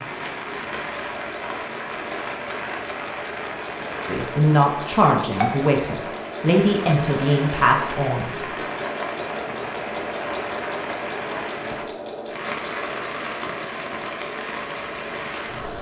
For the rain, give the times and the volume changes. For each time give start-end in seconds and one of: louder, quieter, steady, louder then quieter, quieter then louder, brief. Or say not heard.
0.0-15.7 steady.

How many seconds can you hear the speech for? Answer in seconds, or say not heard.
4 s.